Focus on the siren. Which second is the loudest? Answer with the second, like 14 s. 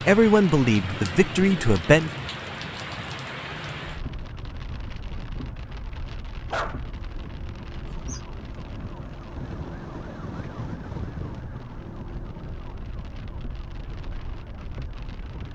11 s.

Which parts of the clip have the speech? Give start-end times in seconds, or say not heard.
0.1-2.1.